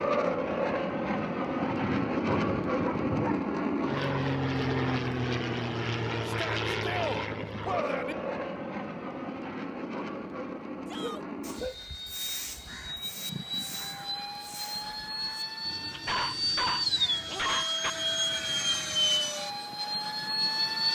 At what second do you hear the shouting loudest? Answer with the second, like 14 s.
7 s.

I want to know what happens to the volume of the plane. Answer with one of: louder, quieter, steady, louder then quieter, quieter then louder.
quieter then louder.